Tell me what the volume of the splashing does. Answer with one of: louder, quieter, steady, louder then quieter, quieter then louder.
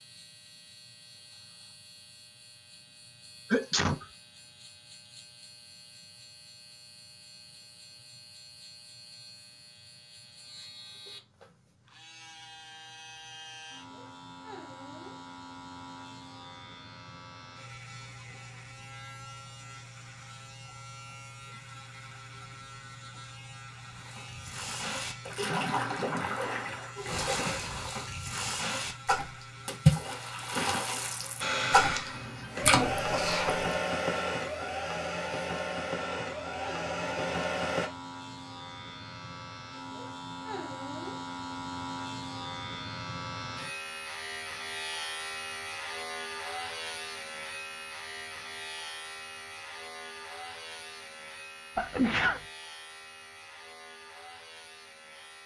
louder.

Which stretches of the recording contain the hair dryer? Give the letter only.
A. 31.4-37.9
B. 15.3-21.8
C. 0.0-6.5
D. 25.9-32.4
A.